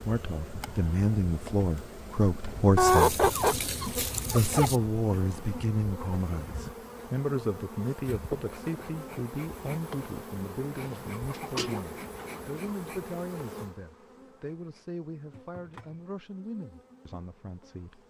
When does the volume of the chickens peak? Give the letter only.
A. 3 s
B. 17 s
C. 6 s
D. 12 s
A.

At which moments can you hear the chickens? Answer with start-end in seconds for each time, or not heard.
2.8-4.8, 10.8-12.6.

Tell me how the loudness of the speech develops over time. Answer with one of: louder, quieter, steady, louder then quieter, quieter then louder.
quieter.